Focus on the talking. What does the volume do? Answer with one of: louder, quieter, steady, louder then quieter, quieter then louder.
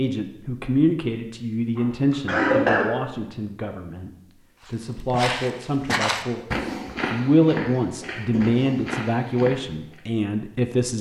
quieter then louder.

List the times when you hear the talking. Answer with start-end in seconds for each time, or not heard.
0.0-10.9.